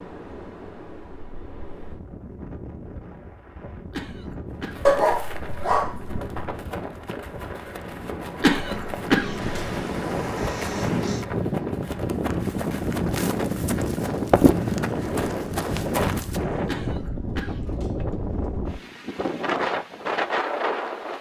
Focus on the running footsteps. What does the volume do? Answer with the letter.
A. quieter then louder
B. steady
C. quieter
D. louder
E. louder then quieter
D.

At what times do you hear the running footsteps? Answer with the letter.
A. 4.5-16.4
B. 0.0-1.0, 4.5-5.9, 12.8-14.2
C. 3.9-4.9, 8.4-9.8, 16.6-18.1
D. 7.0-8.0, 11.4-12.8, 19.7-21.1
A.